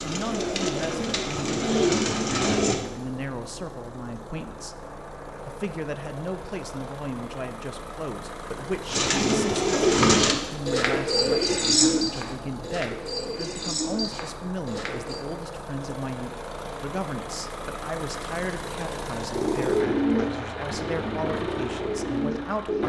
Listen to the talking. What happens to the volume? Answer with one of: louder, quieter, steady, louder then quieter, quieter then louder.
steady.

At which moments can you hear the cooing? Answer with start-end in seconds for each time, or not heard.
0.0-2.8, 8.9-15.2, 19.3-22.8.